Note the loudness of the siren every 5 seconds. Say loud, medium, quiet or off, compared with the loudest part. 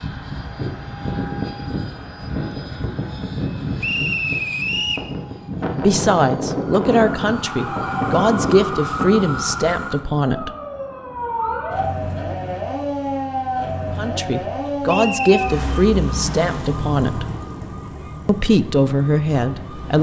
off, loud, loud, loud.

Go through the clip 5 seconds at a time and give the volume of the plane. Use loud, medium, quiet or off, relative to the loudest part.
loud, loud, off, off.